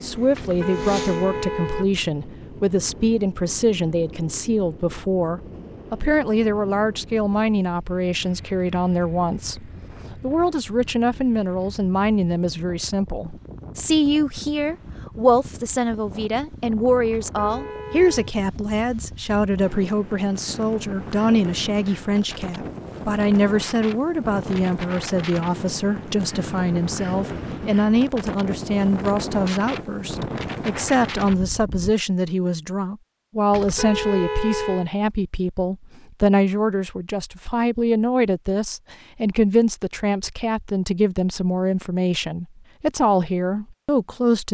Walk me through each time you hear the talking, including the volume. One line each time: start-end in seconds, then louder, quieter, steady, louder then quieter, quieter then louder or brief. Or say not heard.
0.0-44.4 steady.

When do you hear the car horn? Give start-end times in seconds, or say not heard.
0.3-2.0, 17.1-18.3, 33.5-34.9.